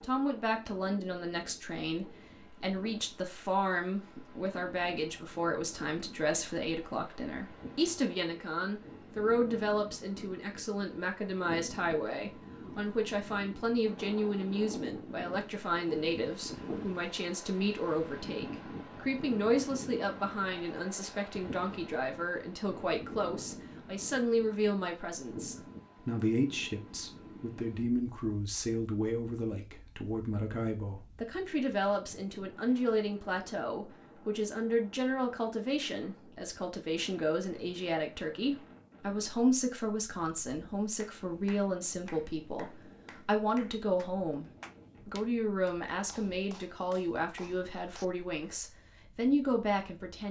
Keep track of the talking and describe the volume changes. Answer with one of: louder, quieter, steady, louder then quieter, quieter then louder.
steady.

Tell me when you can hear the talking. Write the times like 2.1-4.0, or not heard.
0.0-50.2.